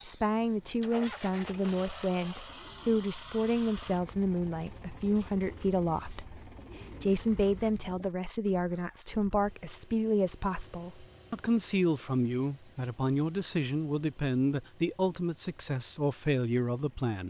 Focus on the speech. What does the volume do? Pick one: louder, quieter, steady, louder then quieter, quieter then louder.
steady.